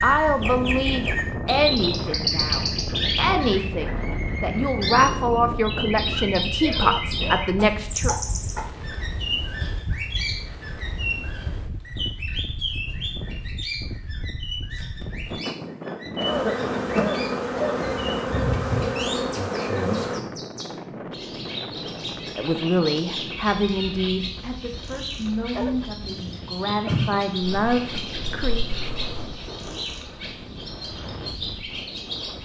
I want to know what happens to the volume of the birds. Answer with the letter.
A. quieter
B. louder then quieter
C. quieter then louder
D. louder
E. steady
A.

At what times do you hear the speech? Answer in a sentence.
You can hear the speech from 0.0 to 8.2 s and from 22.4 to 28.6 s.